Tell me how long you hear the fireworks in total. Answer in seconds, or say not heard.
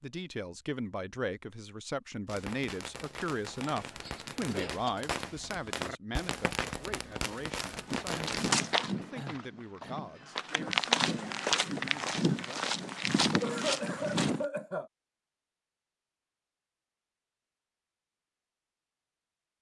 6 s.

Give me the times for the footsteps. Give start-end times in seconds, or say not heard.
7.8-14.4.